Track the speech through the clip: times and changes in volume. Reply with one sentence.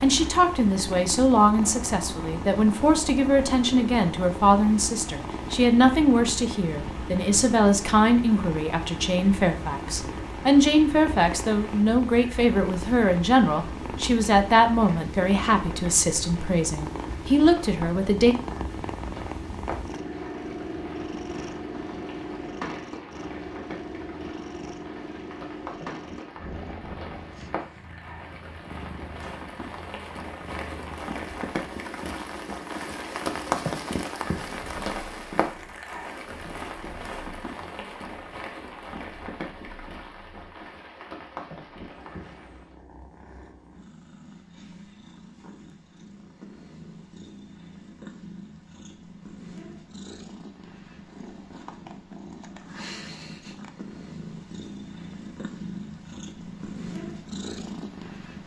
You can hear the speech from 0.0 to 18.4 s, at a steady volume.